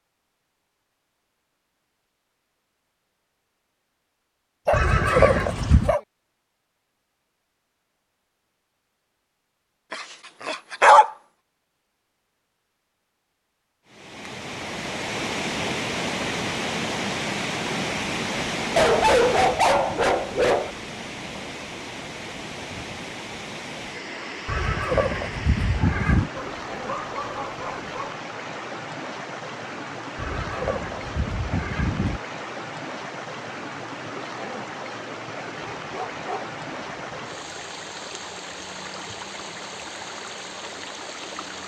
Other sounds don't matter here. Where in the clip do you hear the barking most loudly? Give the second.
11 s.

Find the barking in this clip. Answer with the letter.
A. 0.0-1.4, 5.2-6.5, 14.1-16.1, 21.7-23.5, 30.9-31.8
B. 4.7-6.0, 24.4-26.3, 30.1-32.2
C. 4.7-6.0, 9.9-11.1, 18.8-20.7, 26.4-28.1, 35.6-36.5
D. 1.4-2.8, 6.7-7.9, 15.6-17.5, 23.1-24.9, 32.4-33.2
C.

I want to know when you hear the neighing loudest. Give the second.
5 s.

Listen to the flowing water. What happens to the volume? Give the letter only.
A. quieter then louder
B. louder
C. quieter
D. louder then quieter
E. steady
C.